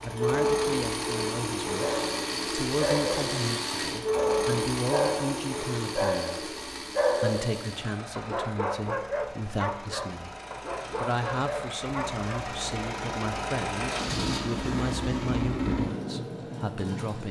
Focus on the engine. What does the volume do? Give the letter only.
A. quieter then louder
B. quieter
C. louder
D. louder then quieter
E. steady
A.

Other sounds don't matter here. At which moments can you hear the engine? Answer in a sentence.
You can hear the engine from 0.0 to 17.2 s.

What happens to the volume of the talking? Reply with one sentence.
The volume of the talking stays about the same.